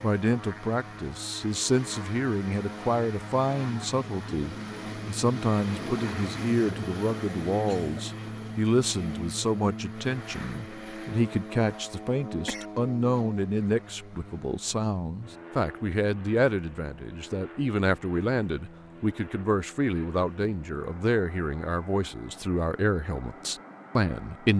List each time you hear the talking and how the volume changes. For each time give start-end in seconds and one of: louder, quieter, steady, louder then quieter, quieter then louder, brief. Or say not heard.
0.0-24.5 steady.